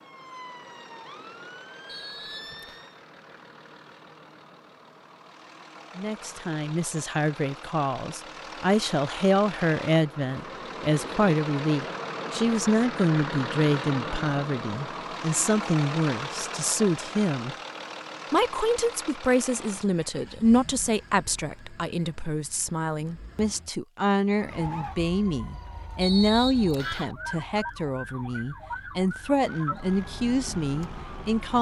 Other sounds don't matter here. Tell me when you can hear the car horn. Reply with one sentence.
You can't hear the car horn here.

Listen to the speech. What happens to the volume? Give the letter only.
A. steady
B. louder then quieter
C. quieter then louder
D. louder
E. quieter
A.